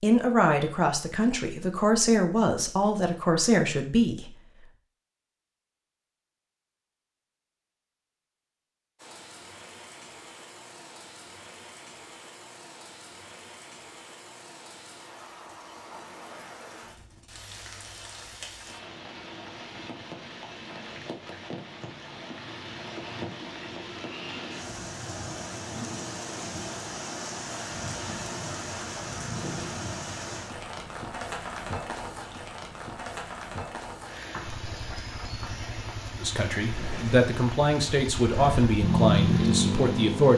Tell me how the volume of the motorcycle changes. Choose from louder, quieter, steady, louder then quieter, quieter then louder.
louder.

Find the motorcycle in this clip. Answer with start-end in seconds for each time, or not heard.
34.5-40.3.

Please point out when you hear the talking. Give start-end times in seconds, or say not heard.
0.0-4.3, 36.2-40.3.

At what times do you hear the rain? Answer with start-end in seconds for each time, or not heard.
8.9-40.3.